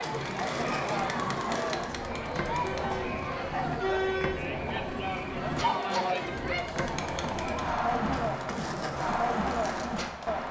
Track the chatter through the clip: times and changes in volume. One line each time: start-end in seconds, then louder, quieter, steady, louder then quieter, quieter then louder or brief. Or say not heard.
0.0-10.4 steady.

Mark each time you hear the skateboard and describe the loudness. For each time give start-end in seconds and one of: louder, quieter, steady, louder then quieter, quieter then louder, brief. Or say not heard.
0.0-10.4 steady.